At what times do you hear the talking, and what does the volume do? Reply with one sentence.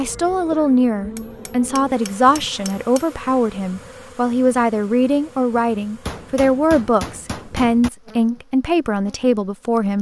The talking can be heard from 0.0 to 9.9 s, at a steady volume.